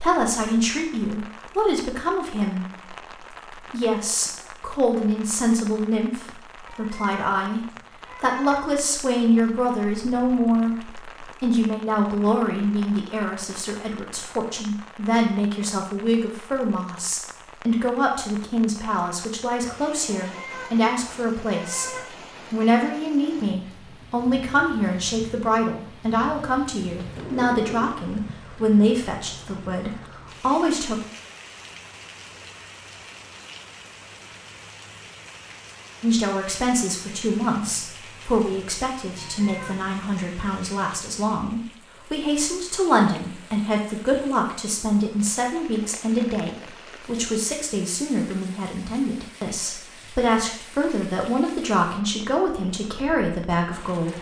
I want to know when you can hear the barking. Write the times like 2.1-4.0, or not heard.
not heard.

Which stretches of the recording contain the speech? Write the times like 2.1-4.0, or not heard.
0.0-3.0, 3.7-31.1, 36.0-54.1.